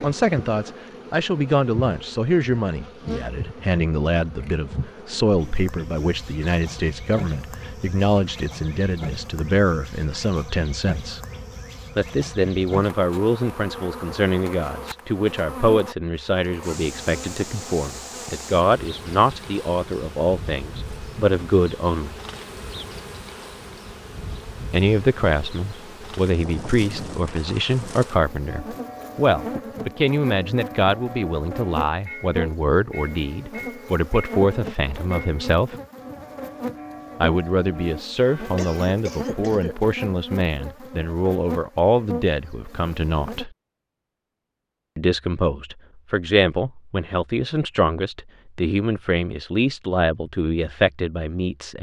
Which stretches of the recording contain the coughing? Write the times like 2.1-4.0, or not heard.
38.5-39.8.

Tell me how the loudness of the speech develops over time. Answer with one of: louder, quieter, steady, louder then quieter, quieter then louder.
steady.